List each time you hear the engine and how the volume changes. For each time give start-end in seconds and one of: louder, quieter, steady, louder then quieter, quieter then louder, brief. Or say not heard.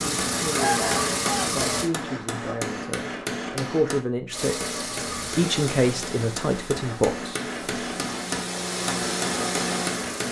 0.0-1.9 brief
4.3-10.2 quieter then louder.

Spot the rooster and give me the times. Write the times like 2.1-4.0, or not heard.
0.6-1.6.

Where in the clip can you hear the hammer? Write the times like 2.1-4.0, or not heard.
0.0-10.2.